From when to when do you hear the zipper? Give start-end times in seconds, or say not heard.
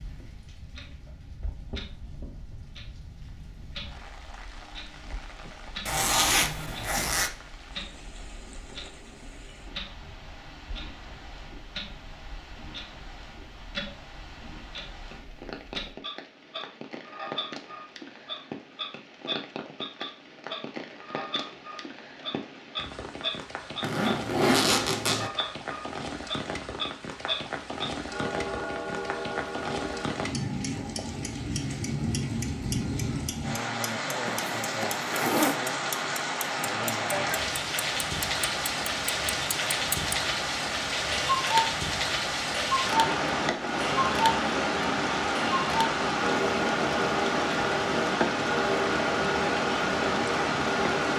5.8-7.3, 23.8-25.3, 34.2-35.5.